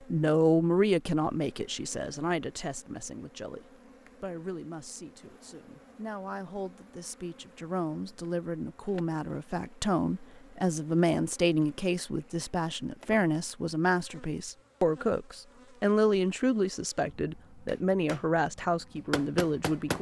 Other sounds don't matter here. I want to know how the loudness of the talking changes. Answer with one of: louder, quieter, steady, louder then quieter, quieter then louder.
quieter then louder.